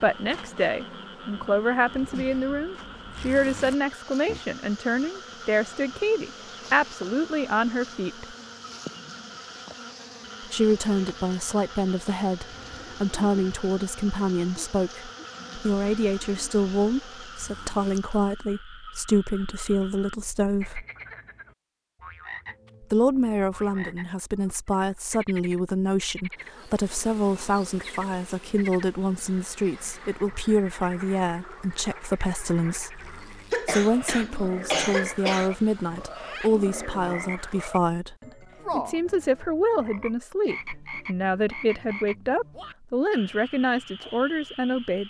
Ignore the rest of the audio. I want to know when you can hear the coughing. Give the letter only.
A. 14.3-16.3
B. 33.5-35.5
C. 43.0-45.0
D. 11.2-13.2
B.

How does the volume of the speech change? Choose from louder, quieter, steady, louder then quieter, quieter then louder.
steady.